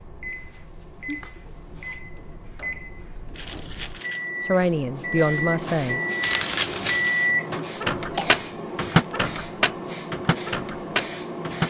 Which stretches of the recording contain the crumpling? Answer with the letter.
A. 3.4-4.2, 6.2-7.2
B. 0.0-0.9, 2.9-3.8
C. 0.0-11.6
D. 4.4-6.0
A.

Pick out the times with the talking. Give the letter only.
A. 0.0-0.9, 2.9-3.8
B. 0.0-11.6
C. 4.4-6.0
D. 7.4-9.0
C.